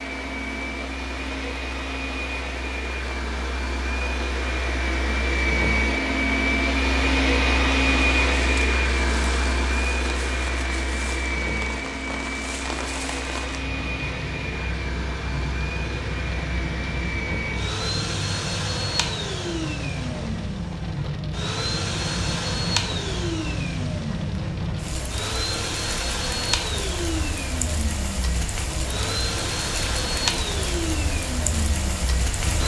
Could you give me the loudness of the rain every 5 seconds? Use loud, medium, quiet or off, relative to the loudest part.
medium, medium, medium, loud, loud, loud, loud.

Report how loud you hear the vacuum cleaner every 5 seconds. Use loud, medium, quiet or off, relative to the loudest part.
medium, loud, medium, medium, medium, medium, medium.